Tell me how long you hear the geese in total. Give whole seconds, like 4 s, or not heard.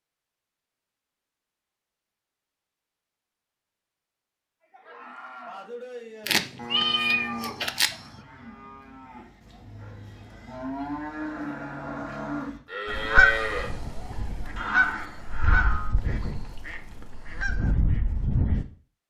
6 s.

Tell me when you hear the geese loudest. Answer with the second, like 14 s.
13 s.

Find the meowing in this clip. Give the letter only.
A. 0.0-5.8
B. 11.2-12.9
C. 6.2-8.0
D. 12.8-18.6
C.